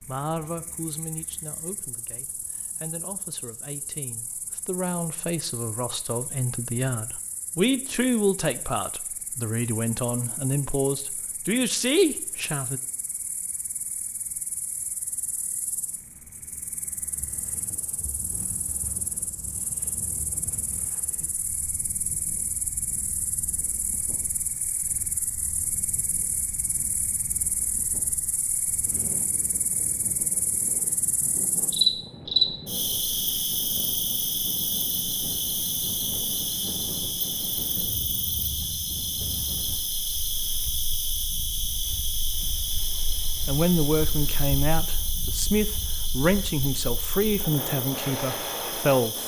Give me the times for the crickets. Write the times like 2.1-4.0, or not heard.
0.0-49.2.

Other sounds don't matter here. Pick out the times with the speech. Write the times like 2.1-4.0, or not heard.
0.1-12.8, 43.5-49.2.